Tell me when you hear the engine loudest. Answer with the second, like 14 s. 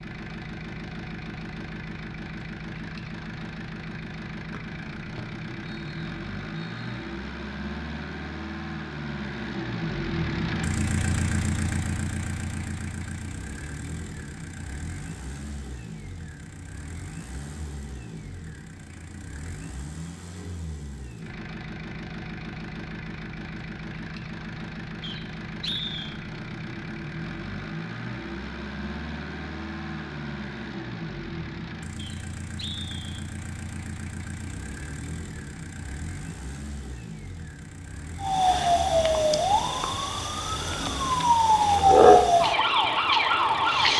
11 s.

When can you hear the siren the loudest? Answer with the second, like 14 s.
42 s.